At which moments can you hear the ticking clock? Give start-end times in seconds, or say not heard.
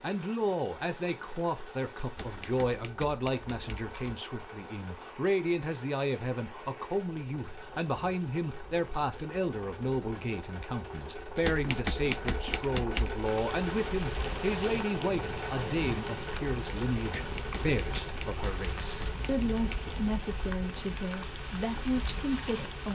not heard.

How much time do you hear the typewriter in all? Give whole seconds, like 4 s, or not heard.
7 s.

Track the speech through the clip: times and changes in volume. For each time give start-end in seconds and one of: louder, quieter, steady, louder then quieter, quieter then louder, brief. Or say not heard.
0.0-22.9 steady.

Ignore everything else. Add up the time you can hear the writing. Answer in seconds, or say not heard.
not heard.